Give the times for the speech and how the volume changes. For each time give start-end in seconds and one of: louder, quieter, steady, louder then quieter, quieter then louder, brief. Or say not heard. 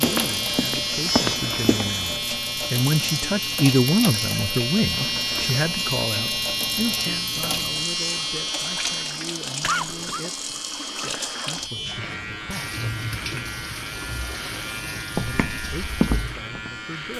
0.0-13.4 louder then quieter
15.2-17.1 brief.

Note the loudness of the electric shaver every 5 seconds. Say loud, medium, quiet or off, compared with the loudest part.
loud, loud, medium, medium.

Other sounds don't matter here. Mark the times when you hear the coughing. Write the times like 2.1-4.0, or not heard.
9.6-10.2.